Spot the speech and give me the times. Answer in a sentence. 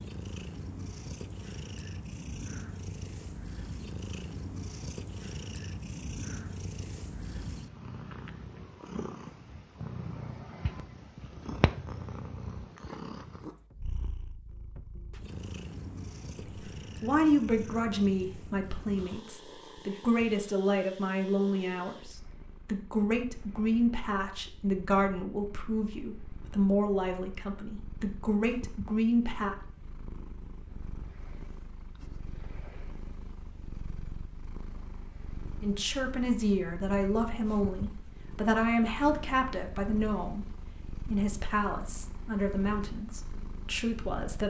The speech can be heard from 16.4 to 29.6 s and from 35.6 to 44.4 s.